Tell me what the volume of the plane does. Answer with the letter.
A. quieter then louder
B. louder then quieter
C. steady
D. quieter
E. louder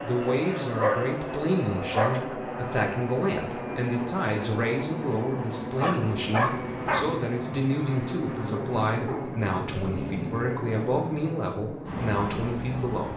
C.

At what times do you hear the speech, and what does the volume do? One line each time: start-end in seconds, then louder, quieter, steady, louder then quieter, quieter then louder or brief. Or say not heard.
0.0-13.1 steady.